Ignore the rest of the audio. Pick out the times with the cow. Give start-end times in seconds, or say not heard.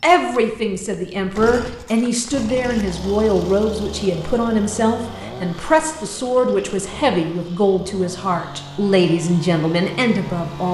not heard.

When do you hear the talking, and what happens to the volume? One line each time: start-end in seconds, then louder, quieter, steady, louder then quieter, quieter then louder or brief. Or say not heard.
0.0-10.6 steady.